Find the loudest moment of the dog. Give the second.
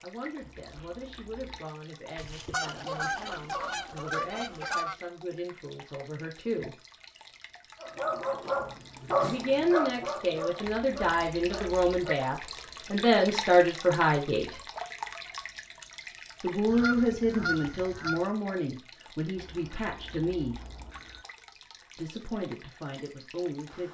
9 s.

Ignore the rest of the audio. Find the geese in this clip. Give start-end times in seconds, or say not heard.
2.1-5.0, 16.6-18.2.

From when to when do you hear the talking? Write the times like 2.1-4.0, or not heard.
0.0-6.8, 9.2-14.6, 16.4-20.6, 21.9-23.9.